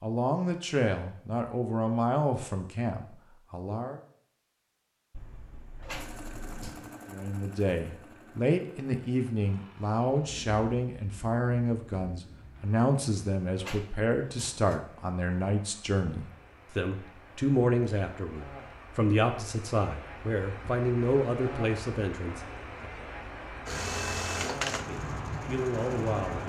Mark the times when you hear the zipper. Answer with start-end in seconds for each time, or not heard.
5.1-6.7.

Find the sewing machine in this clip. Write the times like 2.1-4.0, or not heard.
6.0-10.4, 23.6-26.4.